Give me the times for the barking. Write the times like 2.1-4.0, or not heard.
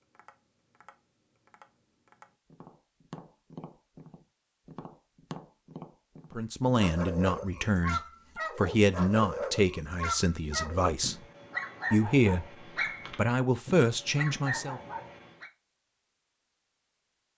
6.8-15.5.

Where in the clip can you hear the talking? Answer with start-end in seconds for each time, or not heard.
6.3-11.2, 11.9-14.8.